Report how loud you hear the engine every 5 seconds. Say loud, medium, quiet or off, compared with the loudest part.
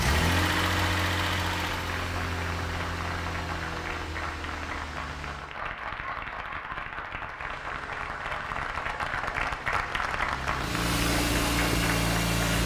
loud, quiet, loud.